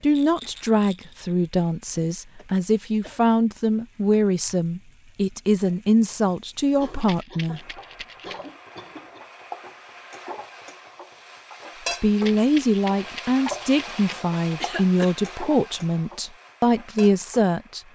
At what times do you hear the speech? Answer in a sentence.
You can hear the speech from 0.0 to 7.6 s and from 12.0 to 17.8 s.